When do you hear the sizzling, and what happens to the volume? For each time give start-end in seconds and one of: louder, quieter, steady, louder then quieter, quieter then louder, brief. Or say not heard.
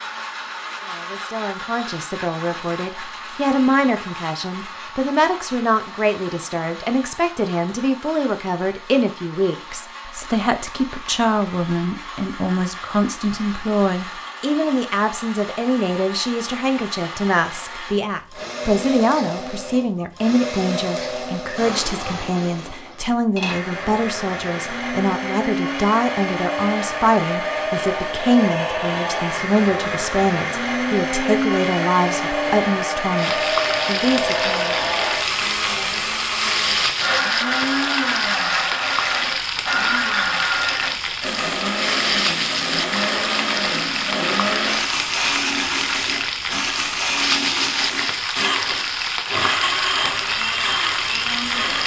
33.1-51.8 steady.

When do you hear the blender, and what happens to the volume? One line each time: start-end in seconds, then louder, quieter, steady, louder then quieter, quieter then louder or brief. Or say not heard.
0.0-51.8 louder.